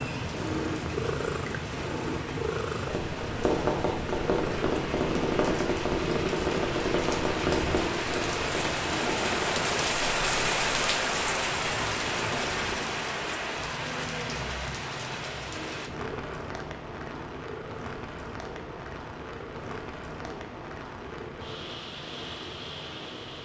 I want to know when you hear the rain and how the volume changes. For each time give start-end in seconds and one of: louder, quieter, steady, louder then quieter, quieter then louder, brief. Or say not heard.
0.0-23.3 louder then quieter.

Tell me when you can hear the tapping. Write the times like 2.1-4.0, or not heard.
2.9-9.8.